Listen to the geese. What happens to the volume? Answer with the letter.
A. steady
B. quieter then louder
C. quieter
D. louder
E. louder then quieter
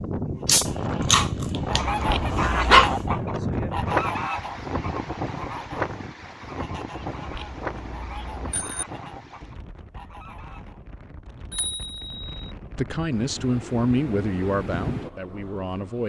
C.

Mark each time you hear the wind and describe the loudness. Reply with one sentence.
You can hear the wind from 0.0 to 16.0 s, getting quieter then louder.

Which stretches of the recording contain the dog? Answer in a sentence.
The dog can be heard from 0.5 to 3.0 s.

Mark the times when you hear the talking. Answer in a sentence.
The talking can be heard from 12.8 to 16.0 s.